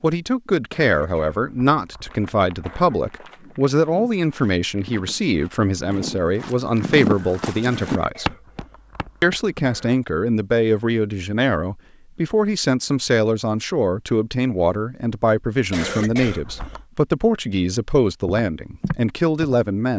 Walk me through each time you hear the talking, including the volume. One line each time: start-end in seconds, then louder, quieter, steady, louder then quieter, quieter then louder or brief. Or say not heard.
0.0-8.3 steady
9.2-19.9 steady.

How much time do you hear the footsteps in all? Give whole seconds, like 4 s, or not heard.
9 s.